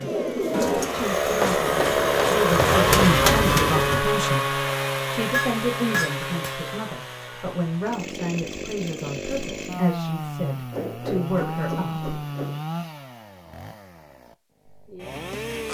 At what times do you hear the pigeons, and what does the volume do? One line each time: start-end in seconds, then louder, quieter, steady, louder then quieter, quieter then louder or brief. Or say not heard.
0.0-4.0 quieter then louder.